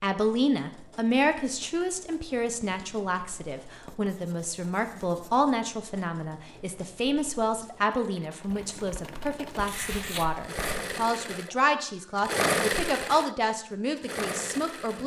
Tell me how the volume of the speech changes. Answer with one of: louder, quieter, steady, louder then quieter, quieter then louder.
steady.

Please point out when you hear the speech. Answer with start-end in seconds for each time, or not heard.
0.0-15.0.